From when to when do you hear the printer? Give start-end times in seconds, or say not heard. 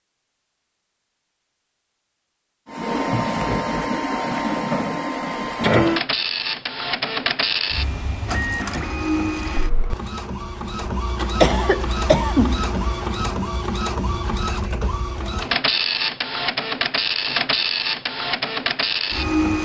2.6-19.5.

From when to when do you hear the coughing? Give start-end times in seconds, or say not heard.
11.4-13.1.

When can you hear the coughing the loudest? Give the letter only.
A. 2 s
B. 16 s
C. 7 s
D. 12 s
D.